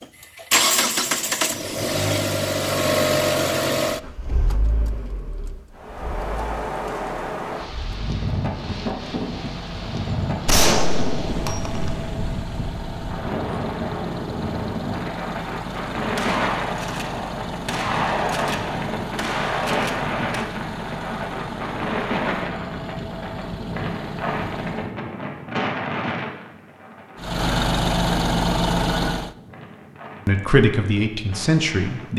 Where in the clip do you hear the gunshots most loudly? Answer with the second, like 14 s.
11 s.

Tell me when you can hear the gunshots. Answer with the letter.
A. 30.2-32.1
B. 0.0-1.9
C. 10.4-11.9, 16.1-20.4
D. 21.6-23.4
C.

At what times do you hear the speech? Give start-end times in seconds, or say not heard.
30.2-32.1.